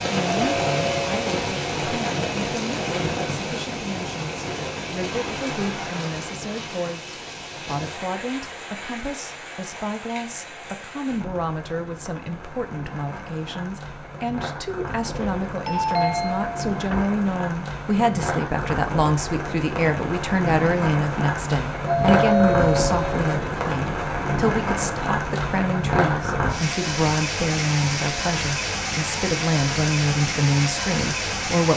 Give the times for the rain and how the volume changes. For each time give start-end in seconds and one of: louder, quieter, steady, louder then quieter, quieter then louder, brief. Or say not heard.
0.0-31.7 quieter then louder.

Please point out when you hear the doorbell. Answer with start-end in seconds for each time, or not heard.
0.4-1.1, 15.1-17.1, 21.9-23.4.